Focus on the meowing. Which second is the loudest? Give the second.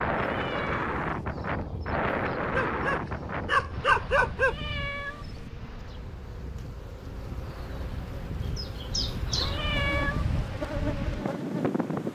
10 s.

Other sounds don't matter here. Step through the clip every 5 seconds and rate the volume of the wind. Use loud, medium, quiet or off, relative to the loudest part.
loud, medium, loud.